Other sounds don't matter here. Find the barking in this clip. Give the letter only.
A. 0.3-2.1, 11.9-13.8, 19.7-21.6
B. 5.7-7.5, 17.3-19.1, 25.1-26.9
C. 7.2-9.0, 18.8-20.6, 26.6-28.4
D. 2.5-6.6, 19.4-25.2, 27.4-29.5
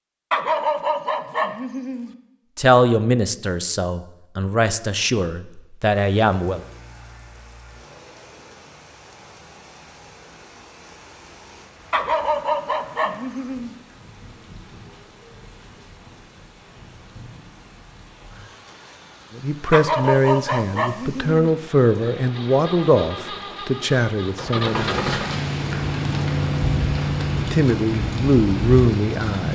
A.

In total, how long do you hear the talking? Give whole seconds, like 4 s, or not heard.
12 s.